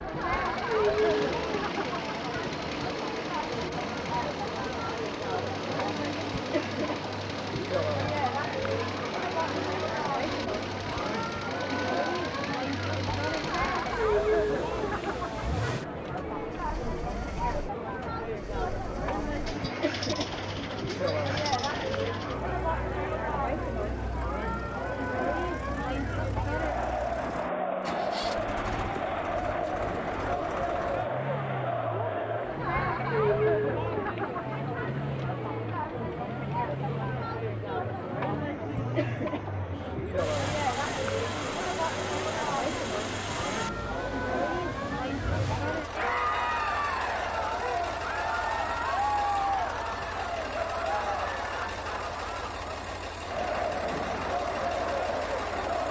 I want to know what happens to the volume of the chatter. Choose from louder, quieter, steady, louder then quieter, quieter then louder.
steady.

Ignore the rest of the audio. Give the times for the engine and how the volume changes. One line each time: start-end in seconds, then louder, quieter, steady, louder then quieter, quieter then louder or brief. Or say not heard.
0.0-55.8 steady.